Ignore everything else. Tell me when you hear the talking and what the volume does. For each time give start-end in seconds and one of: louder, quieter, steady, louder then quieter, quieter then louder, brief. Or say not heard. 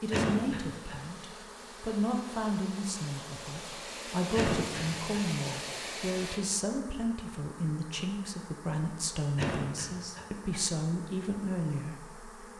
0.0-12.5 steady.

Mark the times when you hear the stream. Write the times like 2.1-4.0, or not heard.
0.0-6.4.